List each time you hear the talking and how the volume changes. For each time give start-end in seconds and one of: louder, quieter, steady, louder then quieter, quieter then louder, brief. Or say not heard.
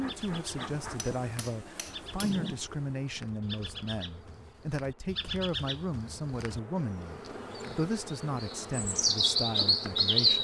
0.0-10.3 steady.